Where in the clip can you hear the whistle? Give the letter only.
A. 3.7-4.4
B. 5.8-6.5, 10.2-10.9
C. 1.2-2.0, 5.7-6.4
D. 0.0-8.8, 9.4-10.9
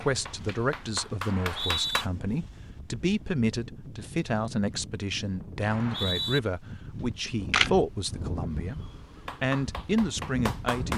C.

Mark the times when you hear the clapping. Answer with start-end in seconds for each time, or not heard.
0.0-2.0, 9.2-10.9.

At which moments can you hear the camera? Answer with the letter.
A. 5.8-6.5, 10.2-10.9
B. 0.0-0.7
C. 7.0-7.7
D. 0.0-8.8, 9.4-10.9
C.